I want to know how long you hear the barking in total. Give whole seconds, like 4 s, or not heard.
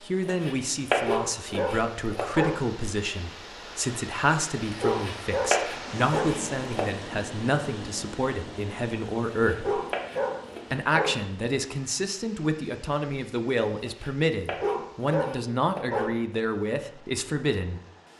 7 s.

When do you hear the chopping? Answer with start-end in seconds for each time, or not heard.
0.2-2.2, 4.9-6.9, 9.3-10.8, 13.8-16.1.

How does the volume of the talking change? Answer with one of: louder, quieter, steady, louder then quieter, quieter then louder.
steady.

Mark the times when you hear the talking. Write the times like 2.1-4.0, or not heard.
0.0-9.8, 10.7-17.8.